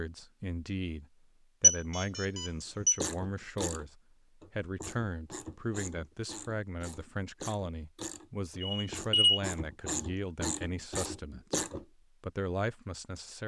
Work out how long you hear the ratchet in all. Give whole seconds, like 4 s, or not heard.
9 s.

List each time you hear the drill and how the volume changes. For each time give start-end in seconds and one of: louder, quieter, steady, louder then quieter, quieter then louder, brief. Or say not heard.
not heard.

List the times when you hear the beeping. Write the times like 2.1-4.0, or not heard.
1.6-3.0, 8.6-9.4.